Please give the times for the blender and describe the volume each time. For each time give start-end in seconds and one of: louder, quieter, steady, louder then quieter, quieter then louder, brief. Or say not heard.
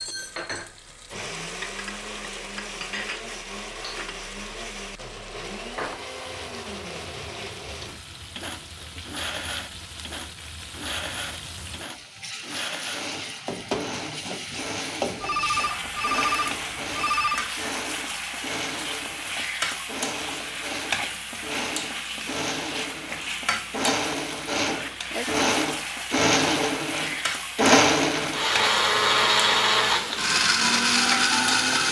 0.0-31.8 louder.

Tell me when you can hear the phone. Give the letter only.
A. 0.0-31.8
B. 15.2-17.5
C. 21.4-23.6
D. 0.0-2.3
B.